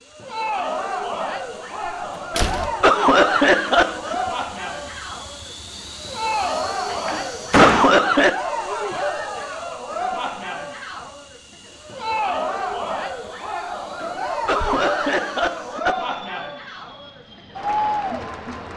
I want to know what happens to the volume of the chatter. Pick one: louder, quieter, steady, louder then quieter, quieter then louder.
steady.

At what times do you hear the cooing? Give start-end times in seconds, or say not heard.
not heard.